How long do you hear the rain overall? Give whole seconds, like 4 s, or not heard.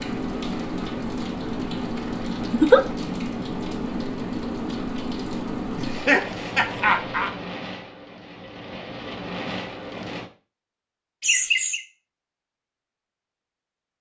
10 s.